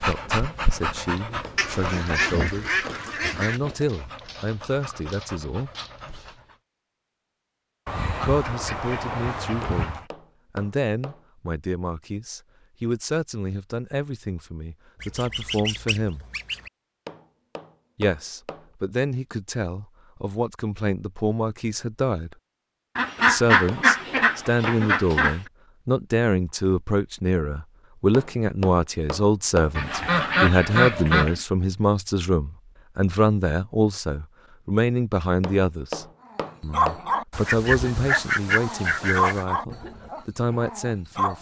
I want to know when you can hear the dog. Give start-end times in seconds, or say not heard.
0.0-6.5, 36.3-41.3.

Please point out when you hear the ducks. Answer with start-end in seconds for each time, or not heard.
1.6-3.6, 7.8-10.1, 15.0-16.7, 22.9-25.4, 29.8-31.4, 37.3-39.5.